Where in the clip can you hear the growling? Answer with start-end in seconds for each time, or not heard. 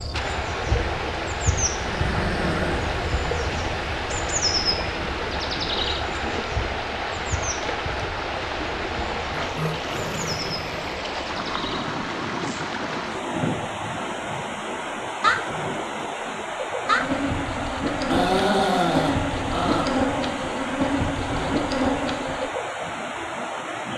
1.8-3.0, 9.5-10.8, 17.9-19.9.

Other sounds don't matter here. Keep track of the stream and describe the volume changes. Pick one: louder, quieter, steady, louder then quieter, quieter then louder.
steady.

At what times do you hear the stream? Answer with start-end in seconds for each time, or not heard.
0.0-23.9.